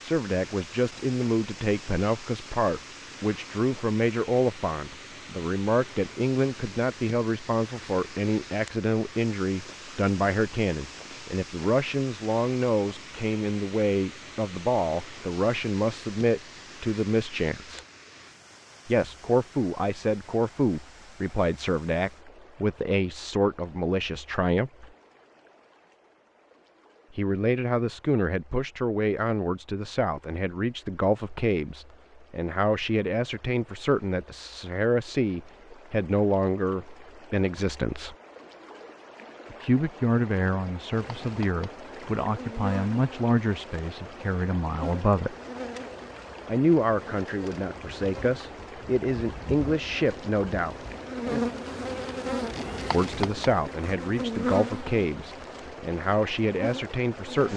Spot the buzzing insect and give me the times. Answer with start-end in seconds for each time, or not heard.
40.9-57.5.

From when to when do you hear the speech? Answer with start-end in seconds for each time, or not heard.
0.0-17.9, 18.9-24.9, 27.1-38.1, 39.5-45.4, 46.5-50.8, 52.9-57.5.